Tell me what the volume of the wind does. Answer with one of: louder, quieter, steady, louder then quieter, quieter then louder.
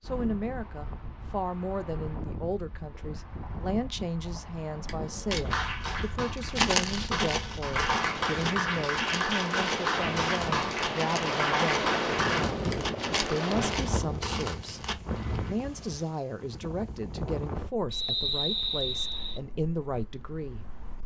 louder then quieter.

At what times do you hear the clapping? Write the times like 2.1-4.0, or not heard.
5.5-12.4.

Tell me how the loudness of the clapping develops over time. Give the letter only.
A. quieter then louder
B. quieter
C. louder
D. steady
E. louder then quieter
C.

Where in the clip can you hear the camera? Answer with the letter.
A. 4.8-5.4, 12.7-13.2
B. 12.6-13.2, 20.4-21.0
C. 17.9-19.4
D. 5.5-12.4
A.